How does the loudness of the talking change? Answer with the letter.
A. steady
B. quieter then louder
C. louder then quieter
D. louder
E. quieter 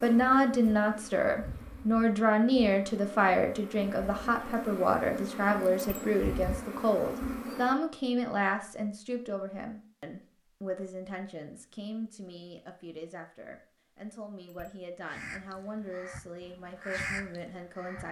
E.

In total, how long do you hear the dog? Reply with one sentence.
The dog can't be heard in this clip.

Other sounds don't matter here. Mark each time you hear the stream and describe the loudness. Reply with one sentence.
You can't hear the stream here.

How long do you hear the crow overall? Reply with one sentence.
The crow can be heard for 3 seconds in total.